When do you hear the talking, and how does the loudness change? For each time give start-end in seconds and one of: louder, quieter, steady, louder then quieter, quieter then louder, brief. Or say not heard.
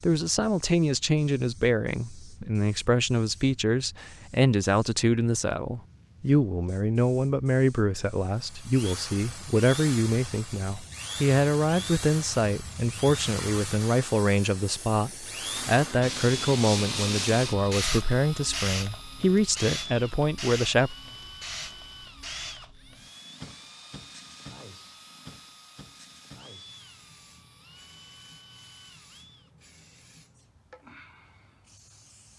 0.0-20.9 steady.